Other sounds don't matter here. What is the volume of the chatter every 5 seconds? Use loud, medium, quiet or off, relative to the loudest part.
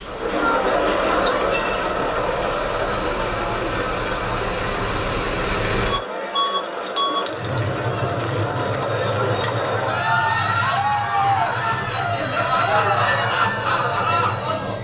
loud, medium, loud.